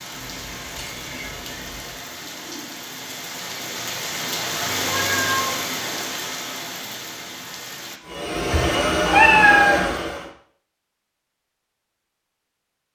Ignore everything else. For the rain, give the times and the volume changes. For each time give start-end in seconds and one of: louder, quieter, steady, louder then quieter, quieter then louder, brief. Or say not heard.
0.0-8.0 louder then quieter.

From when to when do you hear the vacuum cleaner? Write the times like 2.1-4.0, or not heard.
8.0-10.3.